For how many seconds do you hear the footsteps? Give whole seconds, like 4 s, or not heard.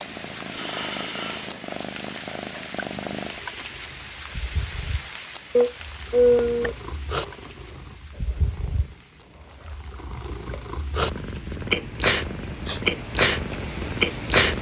not heard.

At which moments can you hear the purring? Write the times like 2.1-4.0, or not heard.
0.0-14.5.